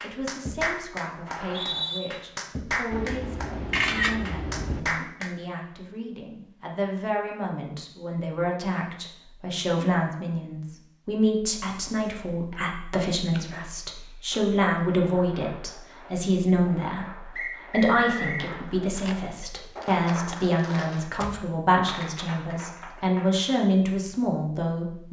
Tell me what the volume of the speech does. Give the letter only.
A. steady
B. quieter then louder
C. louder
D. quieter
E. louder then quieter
C.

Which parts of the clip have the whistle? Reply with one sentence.
The whistle can be heard from 1.2 to 2.0 s and from 17.4 to 18.4 s.